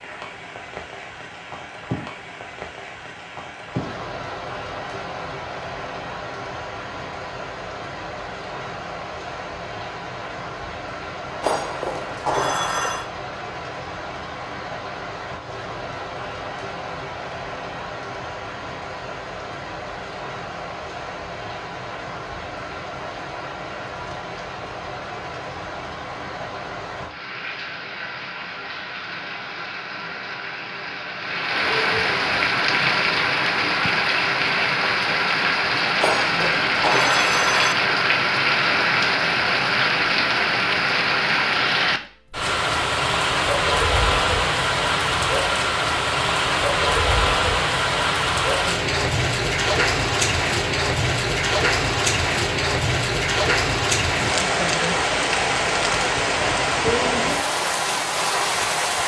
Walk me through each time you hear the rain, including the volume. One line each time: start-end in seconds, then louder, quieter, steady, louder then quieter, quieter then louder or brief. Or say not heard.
0.0-59.0 louder.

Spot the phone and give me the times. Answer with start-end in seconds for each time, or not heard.
11.4-13.1, 36.0-37.8.